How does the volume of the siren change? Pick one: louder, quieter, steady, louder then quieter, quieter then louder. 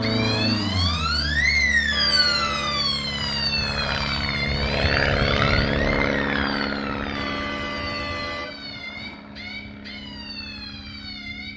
quieter.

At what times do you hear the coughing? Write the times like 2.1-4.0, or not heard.
not heard.